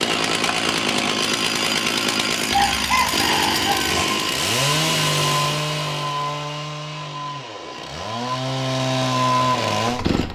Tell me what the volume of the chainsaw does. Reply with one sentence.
The volume of the chainsaw goes down, then up.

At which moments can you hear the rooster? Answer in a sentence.
You can hear the rooster from 2.5 to 4.0 s.